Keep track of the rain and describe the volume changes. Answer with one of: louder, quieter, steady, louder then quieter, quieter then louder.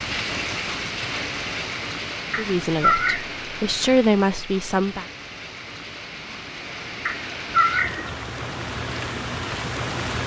quieter then louder.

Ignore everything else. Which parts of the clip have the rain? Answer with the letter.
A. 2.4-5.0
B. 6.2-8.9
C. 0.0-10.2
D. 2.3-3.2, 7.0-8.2
C.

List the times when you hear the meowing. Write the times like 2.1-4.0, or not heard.
2.3-3.2, 7.0-8.2.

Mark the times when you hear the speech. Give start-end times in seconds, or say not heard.
2.4-5.0.